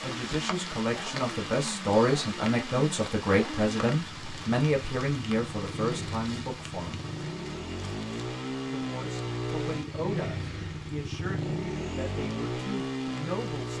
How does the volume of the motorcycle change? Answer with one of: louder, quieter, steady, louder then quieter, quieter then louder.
louder.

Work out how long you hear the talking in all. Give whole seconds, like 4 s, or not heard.
12 s.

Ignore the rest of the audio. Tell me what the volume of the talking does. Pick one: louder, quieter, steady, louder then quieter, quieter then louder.
quieter.